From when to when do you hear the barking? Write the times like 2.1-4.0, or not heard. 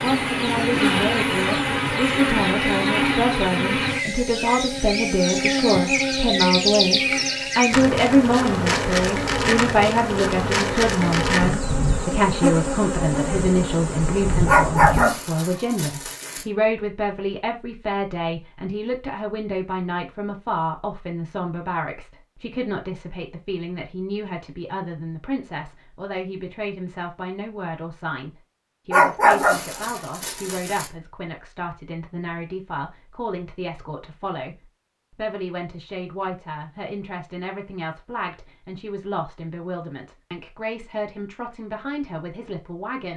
14.4-16.4, 28.9-30.9.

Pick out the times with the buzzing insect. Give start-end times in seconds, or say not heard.
0.0-15.2.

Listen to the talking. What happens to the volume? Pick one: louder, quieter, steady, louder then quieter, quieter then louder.
quieter.